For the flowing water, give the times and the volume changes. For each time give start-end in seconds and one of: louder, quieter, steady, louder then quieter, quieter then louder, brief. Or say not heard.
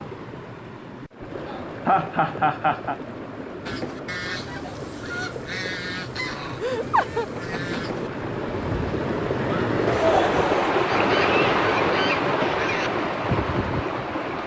0.0-14.4 louder.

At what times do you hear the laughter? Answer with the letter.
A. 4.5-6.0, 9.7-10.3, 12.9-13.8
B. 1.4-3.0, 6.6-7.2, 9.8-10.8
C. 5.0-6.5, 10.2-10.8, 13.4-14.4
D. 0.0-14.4
B.